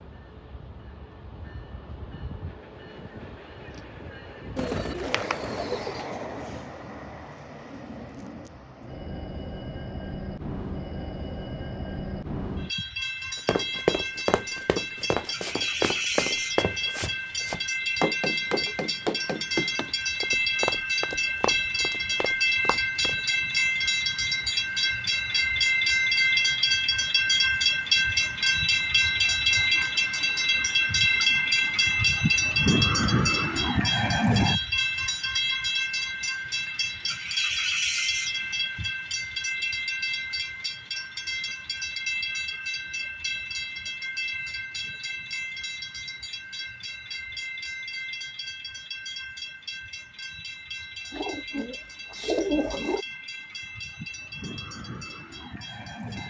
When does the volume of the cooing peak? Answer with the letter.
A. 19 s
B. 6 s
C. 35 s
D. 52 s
D.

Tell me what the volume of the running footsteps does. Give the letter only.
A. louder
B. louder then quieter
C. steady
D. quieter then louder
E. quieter
E.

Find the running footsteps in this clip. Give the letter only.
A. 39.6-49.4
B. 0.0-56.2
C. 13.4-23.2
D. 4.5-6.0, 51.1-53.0
C.